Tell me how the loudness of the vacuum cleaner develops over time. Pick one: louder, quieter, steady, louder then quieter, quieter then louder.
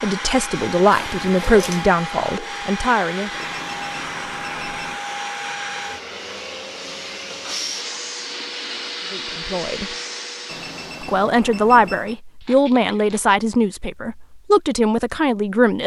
steady.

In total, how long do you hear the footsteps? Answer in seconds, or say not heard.
not heard.